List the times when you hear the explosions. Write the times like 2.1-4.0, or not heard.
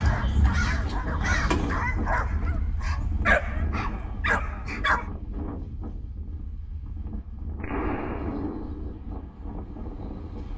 7.6-9.0.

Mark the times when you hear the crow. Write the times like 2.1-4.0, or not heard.
0.0-1.9.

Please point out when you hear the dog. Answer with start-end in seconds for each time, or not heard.
0.0-5.0.